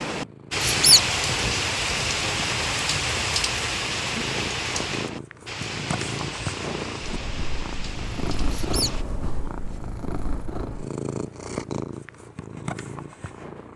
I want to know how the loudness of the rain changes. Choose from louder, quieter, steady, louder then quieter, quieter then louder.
quieter.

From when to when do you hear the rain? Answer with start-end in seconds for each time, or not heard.
0.0-9.1.